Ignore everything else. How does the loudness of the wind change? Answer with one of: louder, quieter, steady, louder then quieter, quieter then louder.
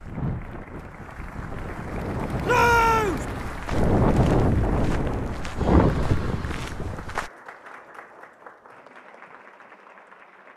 louder.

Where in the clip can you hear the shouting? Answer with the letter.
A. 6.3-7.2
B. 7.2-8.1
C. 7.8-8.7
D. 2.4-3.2
D.